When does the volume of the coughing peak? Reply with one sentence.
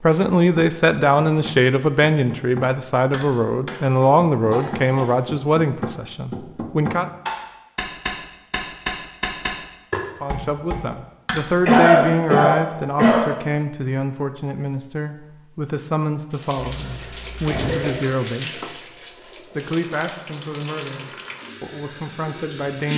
The loudest moment of the coughing is at 12 seconds.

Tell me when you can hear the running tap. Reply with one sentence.
You can hear the running tap from 16.3 to 22.9 s.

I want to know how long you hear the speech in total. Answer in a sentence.
You can hear the speech for 20 seconds altogether.